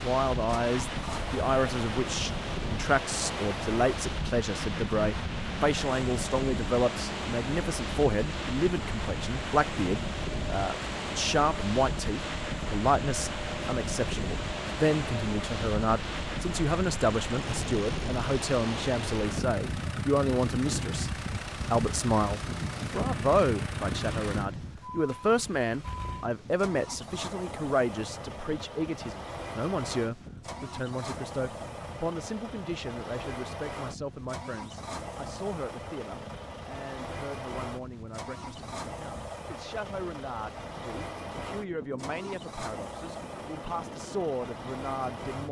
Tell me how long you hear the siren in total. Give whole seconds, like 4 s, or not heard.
not heard.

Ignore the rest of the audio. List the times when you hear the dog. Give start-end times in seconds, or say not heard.
not heard.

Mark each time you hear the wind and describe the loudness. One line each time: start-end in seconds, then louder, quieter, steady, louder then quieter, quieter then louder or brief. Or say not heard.
0.0-45.4 quieter.